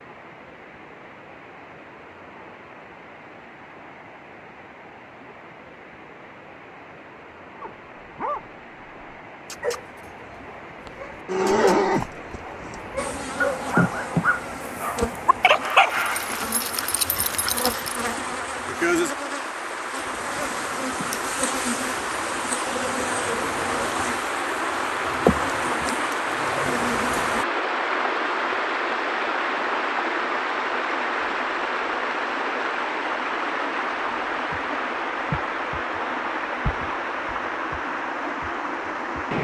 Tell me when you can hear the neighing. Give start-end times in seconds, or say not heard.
10.8-12.8.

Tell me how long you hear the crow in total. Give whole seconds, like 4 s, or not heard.
not heard.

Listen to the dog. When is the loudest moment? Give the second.
16 s.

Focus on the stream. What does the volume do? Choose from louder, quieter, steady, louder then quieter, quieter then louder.
louder.